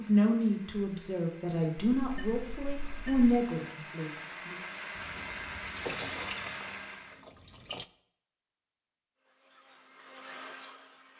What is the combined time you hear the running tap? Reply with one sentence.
The running tap can be heard for 3 seconds in total.